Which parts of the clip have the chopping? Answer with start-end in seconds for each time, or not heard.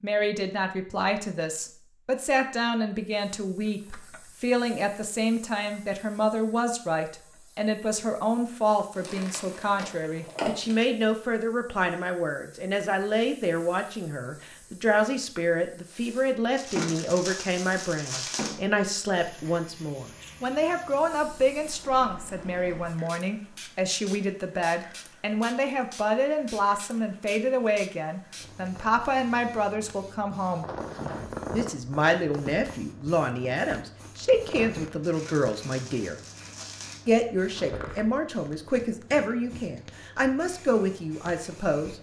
not heard.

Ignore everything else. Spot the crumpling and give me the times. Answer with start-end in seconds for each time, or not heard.
8.9-10.8, 16.6-18.6, 35.0-37.0.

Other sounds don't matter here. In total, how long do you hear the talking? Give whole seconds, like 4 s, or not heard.
40 s.